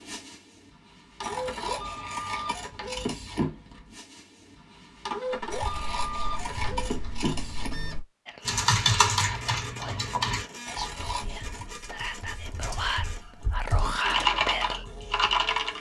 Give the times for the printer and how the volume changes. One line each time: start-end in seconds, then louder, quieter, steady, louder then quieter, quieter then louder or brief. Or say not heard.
0.0-15.7 quieter.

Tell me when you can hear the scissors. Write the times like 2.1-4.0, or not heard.
1.2-3.5, 5.5-7.8, 10.7-11.7.